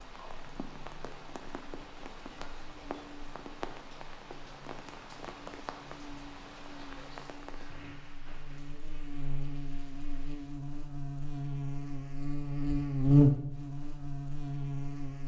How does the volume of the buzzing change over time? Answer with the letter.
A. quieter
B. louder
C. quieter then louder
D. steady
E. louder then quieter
B.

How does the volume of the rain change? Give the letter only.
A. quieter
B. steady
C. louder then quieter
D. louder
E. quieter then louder
A.